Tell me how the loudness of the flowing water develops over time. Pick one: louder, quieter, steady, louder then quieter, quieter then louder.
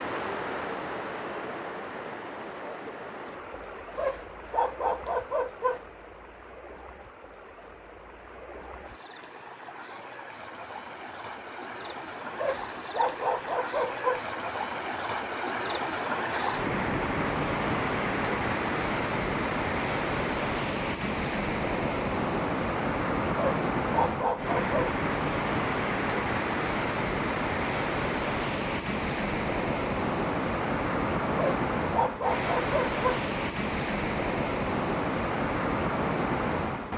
louder.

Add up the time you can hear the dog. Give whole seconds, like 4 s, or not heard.
7 s.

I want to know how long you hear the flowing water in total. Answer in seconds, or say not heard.
37 s.